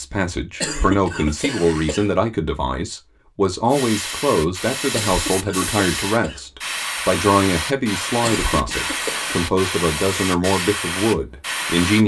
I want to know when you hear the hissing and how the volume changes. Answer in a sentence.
The hissing can be heard from 3.7 to 12.0 s, at a steady volume.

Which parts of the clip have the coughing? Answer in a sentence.
You can hear the coughing from 0.6 to 2.0 s, from 5.0 to 6.4 s and from 8.2 to 9.4 s.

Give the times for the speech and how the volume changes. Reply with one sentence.
You can hear the speech from 0.0 to 12.0 s, at a steady volume.